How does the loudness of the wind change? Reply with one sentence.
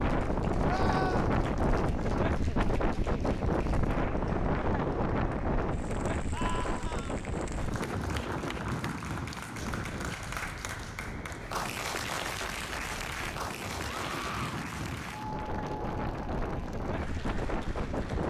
The volume of the wind goes down, then up.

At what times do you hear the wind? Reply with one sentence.
The wind can be heard from 0.0 to 18.2 s.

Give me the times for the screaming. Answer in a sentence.
You can hear the screaming from 0.7 to 1.3 s, from 6.3 to 7.2 s and from 13.8 to 14.6 s.